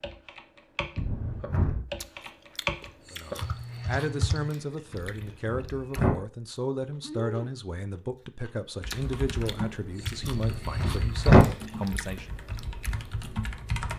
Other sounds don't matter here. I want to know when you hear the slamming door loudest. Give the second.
11 s.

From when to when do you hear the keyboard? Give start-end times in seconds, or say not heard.
0.0-4.5, 8.8-13.9.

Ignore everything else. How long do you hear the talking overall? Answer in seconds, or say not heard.
9 s.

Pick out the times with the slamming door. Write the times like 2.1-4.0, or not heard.
0.9-1.9, 4.9-6.2, 10.2-11.4.